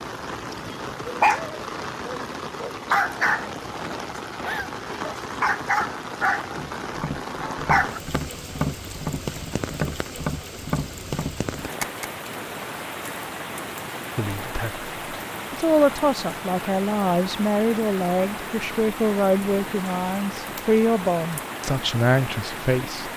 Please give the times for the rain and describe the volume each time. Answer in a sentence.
You can hear the rain from 0.0 to 23.1 s, at a steady volume.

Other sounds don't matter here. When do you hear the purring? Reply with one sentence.
The purring can't be heard in this clip.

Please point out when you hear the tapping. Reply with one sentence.
The tapping can be heard from 6.5 to 12.1 s.